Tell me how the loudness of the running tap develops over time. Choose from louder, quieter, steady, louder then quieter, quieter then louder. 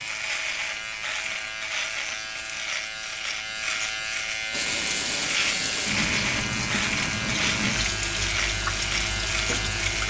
steady.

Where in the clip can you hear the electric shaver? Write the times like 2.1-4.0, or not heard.
0.0-10.0.